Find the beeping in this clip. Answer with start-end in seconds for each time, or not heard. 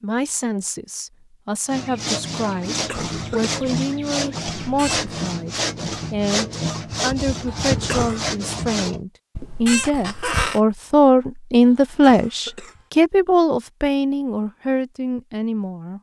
not heard.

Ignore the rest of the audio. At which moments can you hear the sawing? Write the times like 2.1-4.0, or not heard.
1.7-9.1.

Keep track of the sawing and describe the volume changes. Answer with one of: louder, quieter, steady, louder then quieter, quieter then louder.
steady.